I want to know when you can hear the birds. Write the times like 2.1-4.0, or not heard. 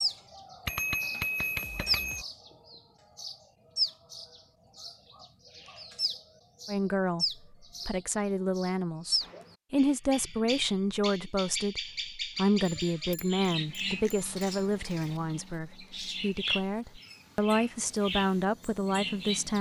0.0-19.5.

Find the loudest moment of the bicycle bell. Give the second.
1 s.